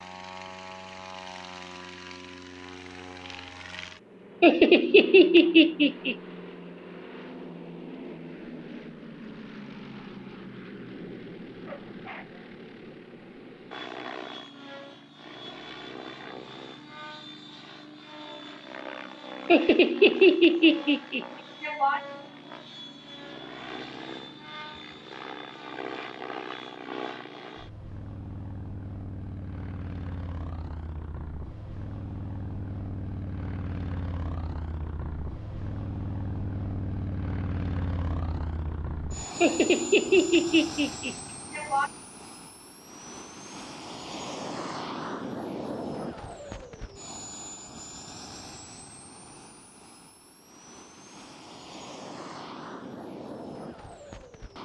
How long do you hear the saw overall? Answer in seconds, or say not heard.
not heard.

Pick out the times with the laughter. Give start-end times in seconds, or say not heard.
4.4-6.2, 19.4-22.0, 39.4-41.9.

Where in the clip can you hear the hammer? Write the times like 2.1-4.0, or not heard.
not heard.